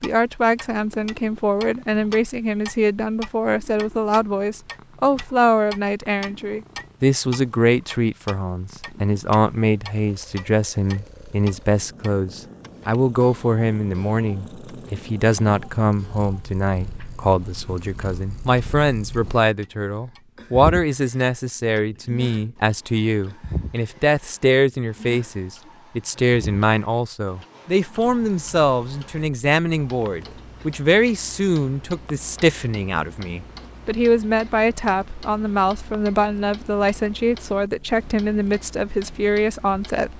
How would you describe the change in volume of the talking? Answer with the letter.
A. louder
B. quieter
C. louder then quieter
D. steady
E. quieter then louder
D.